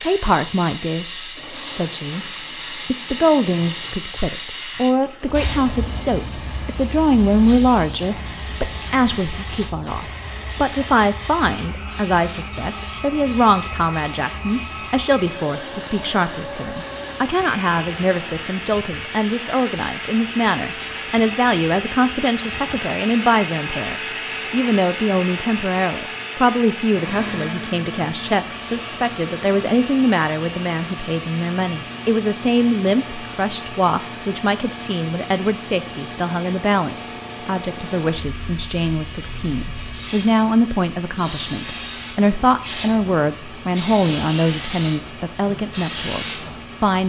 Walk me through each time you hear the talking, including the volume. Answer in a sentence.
You can hear the talking from 0.0 to 47.0 s, at a steady volume.